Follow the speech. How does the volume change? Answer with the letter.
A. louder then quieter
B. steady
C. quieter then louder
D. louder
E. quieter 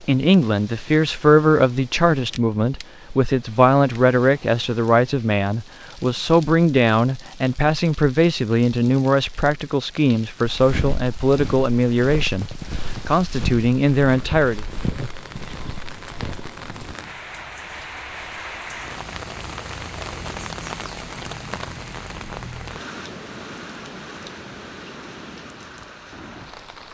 B.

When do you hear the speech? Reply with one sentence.
You can hear the speech from 0.1 to 14.6 s.